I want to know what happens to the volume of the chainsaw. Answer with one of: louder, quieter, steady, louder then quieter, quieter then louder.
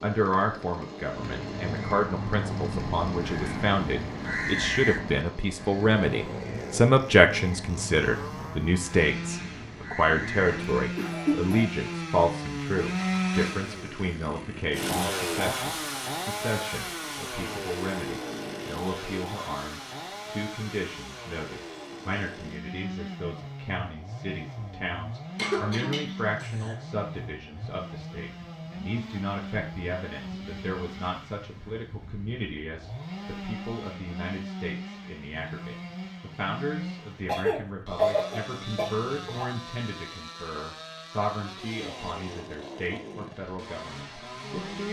louder then quieter.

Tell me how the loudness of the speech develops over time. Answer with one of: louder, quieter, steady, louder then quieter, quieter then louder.
quieter.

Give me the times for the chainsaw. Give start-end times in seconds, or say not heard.
0.0-44.8.